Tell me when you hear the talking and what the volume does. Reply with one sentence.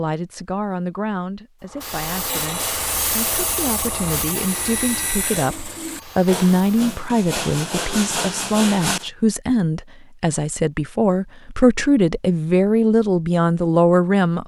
The talking can be heard from 0.0 to 14.4 s, getting louder.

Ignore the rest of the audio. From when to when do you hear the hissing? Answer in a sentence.
You can hear the hissing from 1.6 to 7.0 s.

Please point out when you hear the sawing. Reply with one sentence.
You can hear the sawing from 2.2 to 9.1 s.